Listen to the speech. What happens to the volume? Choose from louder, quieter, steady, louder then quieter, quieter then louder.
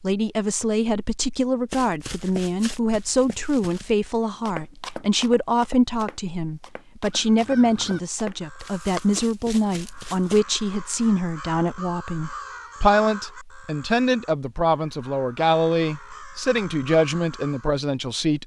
steady.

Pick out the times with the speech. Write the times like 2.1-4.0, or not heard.
0.0-18.4.